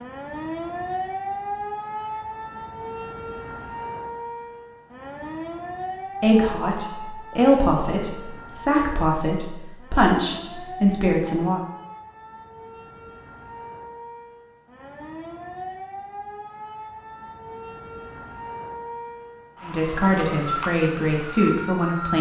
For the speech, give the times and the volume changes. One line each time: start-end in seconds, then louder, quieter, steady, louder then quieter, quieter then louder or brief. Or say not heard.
6.2-11.6 steady
19.6-22.1 brief.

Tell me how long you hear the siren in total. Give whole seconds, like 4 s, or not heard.
22 s.